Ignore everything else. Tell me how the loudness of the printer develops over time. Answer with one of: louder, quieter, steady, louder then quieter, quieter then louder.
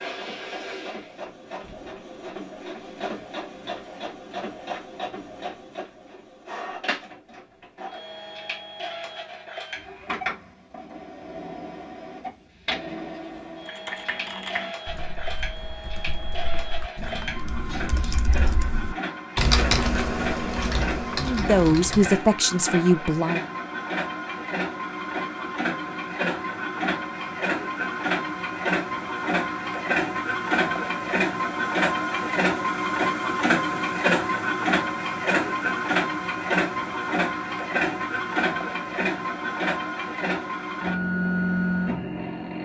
louder.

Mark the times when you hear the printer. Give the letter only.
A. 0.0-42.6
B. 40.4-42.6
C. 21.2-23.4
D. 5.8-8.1
A.